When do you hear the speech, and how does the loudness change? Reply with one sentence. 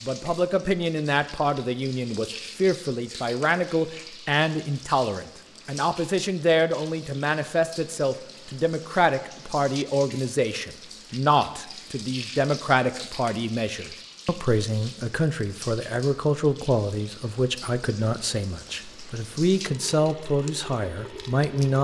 You can hear the speech from 0.0 to 21.7 s, at a steady volume.